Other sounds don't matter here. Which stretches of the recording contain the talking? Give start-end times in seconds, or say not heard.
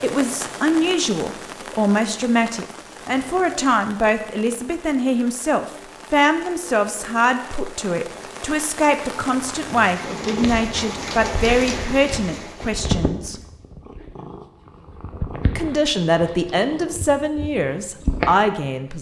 0.0-13.4, 15.6-18.9.